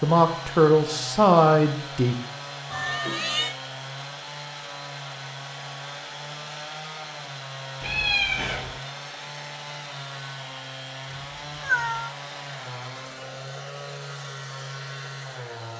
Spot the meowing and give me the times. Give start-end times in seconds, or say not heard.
2.7-3.5, 7.8-8.8, 11.1-12.2.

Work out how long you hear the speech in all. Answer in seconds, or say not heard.
2 s.